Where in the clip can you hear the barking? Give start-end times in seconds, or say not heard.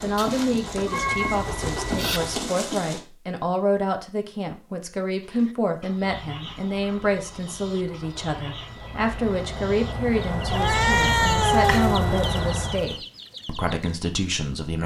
not heard.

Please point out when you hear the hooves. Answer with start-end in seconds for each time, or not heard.
0.0-3.0.